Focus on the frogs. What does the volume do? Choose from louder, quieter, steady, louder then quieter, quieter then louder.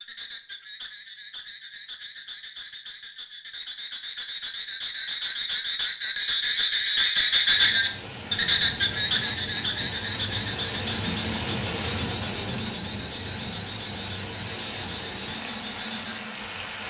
louder then quieter.